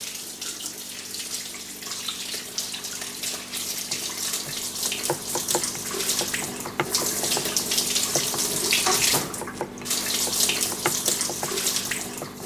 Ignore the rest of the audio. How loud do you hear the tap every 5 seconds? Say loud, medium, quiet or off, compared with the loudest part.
medium, loud, loud.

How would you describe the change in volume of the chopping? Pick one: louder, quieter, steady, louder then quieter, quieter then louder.
steady.